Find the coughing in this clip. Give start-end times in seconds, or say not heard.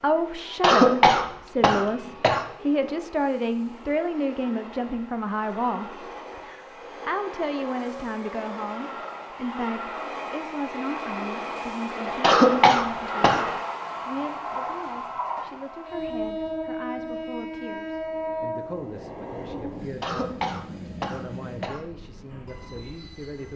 0.6-2.5, 12.2-13.4, 20.0-21.8.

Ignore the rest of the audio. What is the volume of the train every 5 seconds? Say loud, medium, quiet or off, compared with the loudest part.
quiet, medium, loud, loud, medium.